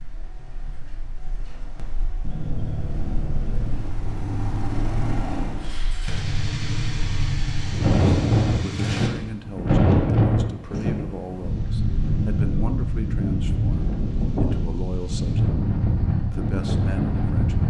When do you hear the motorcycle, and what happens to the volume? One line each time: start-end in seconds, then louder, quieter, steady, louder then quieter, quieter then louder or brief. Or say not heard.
2.2-9.1 steady.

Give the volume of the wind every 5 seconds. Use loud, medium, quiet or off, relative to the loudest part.
quiet, loud, loud, loud.